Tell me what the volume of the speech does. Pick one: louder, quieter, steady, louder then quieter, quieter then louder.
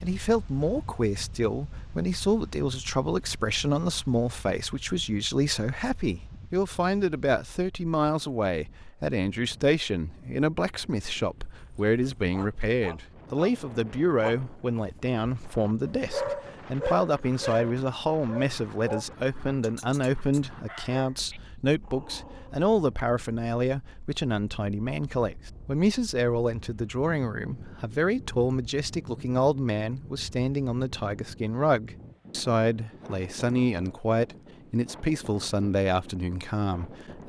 steady.